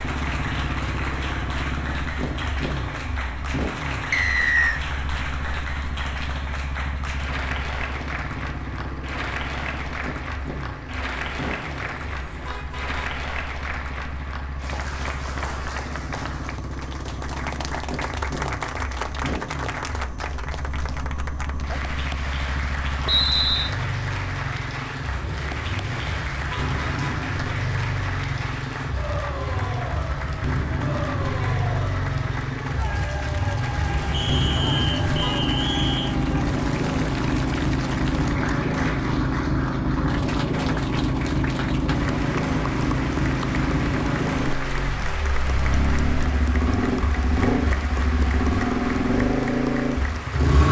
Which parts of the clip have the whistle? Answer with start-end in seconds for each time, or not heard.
4.1-4.8, 23.1-23.8, 34.1-36.1.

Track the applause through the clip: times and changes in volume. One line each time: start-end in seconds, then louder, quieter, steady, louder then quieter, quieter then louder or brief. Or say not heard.
0.0-50.6 steady.